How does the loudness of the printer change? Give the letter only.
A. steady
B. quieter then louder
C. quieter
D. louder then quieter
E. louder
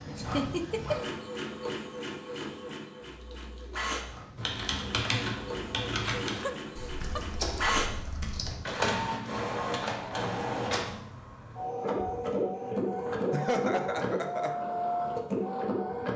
E.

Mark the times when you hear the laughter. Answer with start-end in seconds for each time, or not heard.
0.1-1.1, 6.2-7.8, 13.3-14.6.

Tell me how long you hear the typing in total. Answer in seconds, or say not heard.
6 s.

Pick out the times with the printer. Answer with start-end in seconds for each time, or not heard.
0.0-16.1.